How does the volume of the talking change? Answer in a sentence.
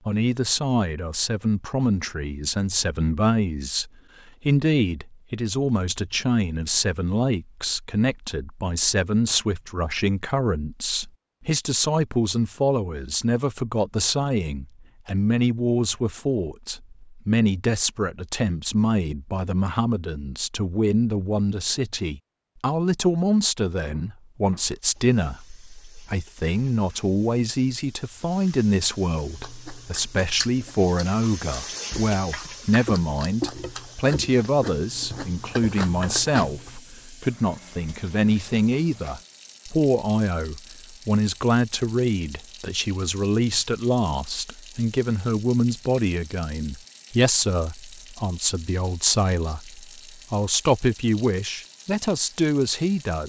The loudness of the talking stays about the same.